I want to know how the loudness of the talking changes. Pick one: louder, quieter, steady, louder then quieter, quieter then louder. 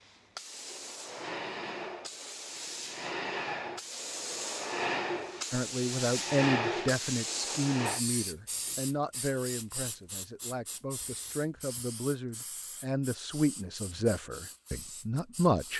quieter then louder.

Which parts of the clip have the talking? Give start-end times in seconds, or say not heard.
5.5-15.7.